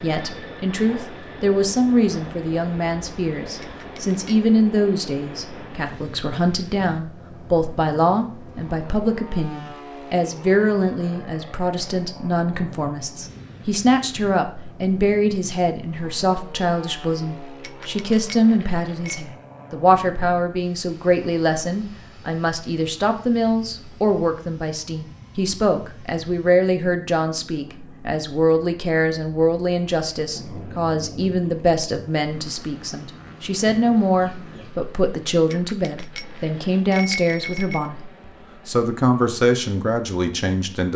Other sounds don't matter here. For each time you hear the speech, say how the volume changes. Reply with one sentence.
You can hear the speech from 0.0 to 38.0 s, at a steady volume; and briefly from 38.6 to 40.9 s.